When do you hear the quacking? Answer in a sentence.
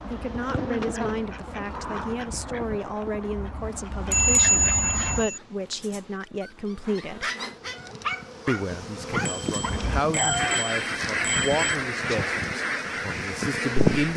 You can hear the quacking from 0.0 to 5.3 s and from 9.6 to 14.1 s.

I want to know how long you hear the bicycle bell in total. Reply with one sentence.
The bicycle bell can be heard for 4 seconds in total.